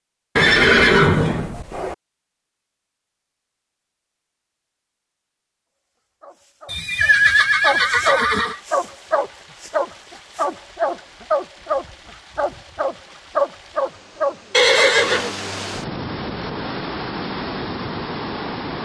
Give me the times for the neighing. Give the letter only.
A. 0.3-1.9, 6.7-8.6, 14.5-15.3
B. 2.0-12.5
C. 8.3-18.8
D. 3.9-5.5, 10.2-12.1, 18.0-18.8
A.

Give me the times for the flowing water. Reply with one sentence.
The flowing water can be heard from 8.3 to 18.8 s.